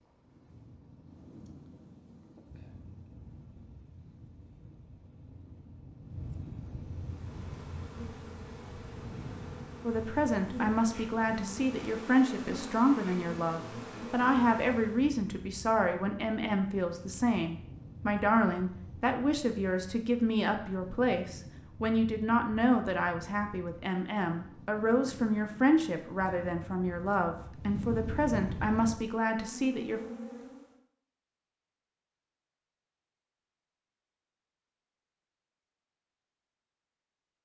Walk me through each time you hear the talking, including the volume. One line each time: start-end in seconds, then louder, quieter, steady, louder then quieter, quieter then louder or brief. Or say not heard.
9.8-30.0 steady.